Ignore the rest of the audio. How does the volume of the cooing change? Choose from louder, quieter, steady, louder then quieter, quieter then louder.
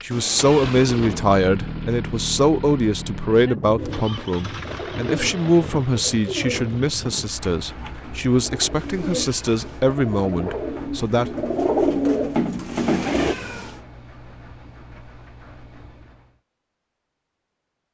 louder.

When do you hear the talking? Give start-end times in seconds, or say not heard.
0.0-11.4.